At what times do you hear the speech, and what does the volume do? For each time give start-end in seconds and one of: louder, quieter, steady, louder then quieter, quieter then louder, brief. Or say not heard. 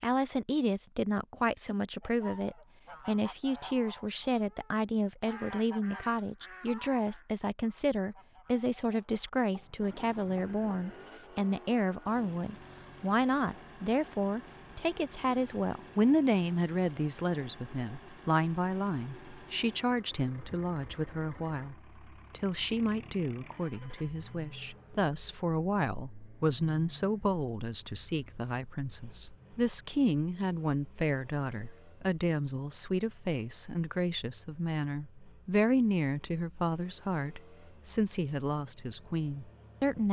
0.0-40.0 steady.